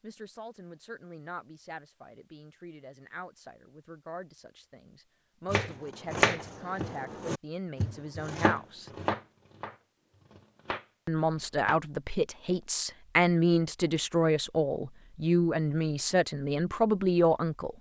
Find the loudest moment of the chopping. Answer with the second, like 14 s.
6 s.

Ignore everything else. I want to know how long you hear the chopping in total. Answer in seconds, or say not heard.
6 s.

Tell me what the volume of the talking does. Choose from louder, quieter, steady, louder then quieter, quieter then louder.
louder.